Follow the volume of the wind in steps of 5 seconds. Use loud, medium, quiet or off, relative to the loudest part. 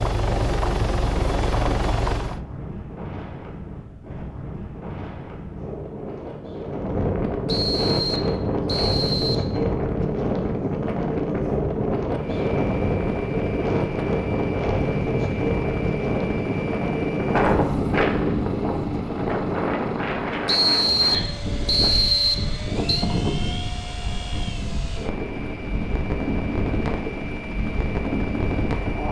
quiet, loud, loud, loud, medium, medium.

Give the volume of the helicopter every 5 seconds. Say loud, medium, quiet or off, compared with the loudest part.
loud, off, medium, medium, medium, medium.